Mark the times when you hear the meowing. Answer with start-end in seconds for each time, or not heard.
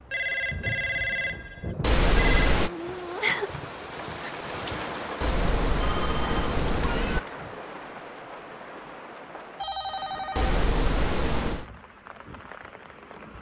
1.8-2.7, 5.2-7.2, 10.3-11.7.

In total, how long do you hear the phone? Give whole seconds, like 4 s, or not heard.
4 s.